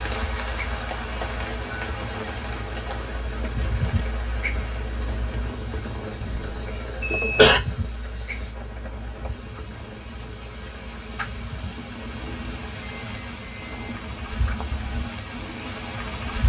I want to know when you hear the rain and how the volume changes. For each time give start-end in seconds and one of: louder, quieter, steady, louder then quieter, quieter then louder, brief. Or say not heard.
0.0-16.4 quieter then louder.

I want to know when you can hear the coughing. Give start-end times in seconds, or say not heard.
6.2-7.6.